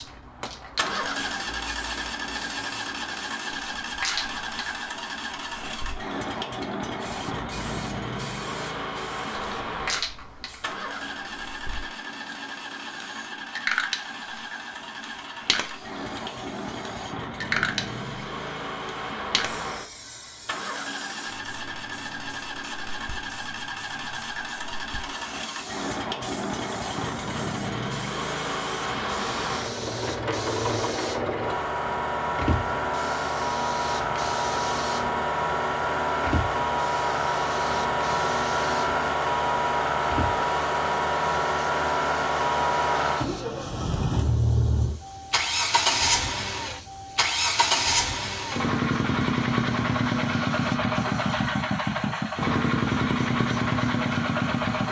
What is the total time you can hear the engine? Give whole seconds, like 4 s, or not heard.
55 s.